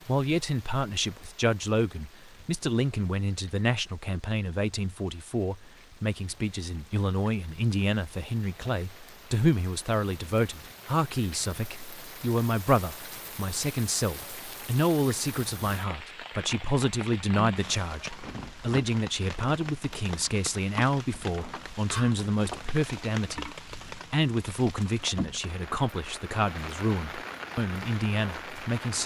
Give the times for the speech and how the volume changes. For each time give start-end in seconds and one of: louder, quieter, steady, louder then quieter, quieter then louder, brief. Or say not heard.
0.1-29.0 steady.